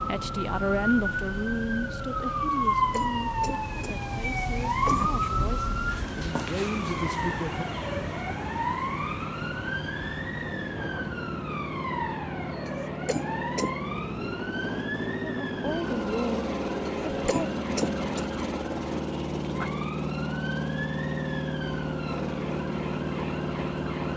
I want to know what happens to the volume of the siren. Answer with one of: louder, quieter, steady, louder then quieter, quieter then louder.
quieter.